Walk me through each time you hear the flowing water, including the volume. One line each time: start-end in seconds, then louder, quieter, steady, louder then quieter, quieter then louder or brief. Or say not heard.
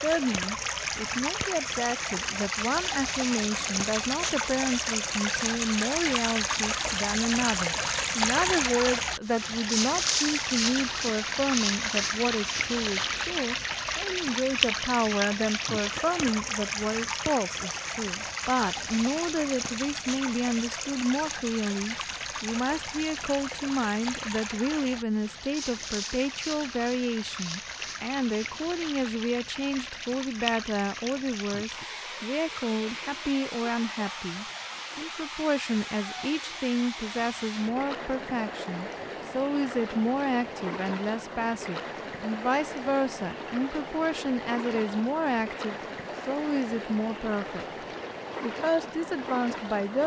0.0-50.0 quieter.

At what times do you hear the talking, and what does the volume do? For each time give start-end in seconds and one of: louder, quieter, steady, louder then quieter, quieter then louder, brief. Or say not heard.
0.0-50.0 steady.